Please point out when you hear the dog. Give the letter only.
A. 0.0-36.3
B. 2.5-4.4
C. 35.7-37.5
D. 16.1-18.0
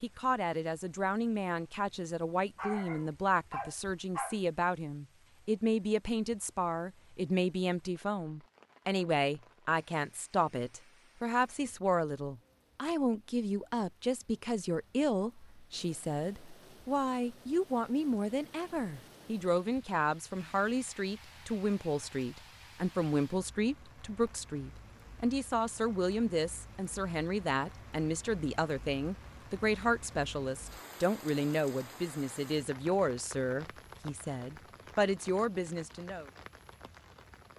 B.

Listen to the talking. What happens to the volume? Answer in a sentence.
The volume of the talking stays about the same.